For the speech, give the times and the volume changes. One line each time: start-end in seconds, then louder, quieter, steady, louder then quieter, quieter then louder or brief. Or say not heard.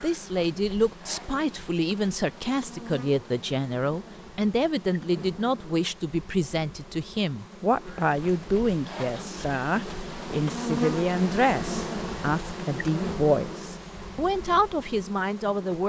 0.0-15.8 steady.